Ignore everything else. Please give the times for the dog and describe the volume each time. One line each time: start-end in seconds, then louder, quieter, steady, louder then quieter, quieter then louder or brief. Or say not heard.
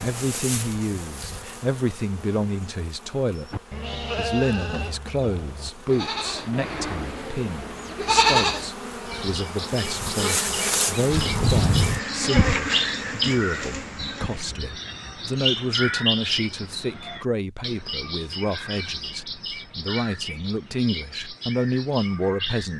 not heard.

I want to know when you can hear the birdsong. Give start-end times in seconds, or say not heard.
9.1-22.7.